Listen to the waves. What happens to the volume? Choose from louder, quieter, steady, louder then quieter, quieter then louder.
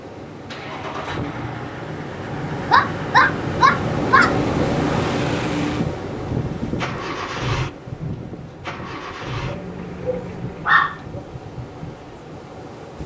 louder then quieter.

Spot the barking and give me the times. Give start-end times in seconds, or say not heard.
2.6-4.3, 9.4-11.2.